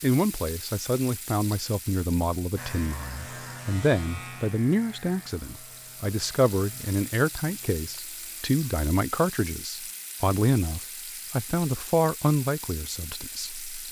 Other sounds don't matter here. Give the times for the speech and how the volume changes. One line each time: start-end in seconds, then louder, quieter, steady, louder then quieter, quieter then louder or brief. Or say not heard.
0.0-13.8 steady.